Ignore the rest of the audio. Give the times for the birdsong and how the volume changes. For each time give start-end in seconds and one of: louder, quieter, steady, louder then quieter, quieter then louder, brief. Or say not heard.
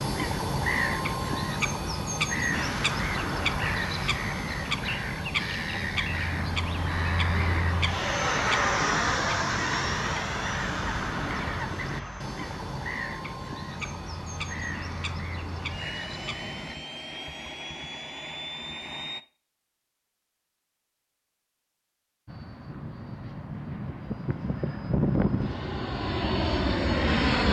0.0-16.8 quieter.